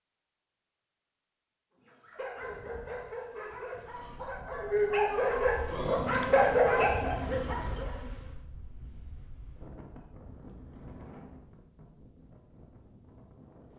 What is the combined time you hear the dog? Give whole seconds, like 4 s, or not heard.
6 s.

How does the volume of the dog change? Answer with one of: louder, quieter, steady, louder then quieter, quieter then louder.
louder.